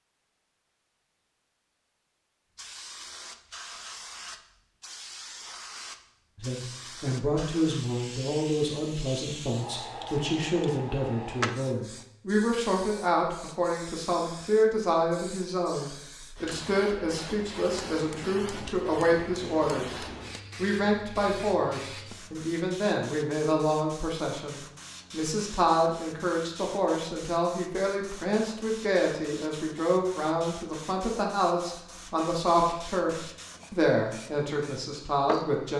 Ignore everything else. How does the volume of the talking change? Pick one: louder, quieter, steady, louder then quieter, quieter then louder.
steady.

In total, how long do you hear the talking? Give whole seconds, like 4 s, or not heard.
29 s.